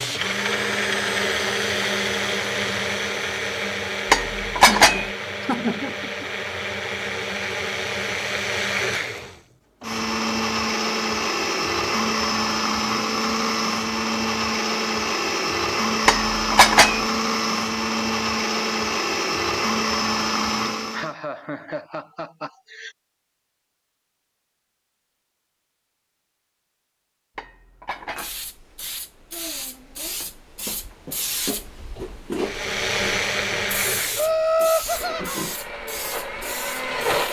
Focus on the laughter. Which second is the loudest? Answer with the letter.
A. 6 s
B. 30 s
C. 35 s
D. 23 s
C.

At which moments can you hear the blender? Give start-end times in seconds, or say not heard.
0.0-21.1, 32.4-37.2.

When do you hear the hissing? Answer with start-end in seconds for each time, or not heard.
28.0-37.2.